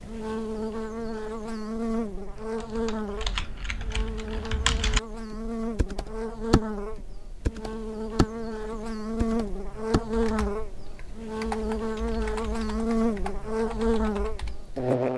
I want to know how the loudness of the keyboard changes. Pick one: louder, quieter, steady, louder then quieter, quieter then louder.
louder then quieter.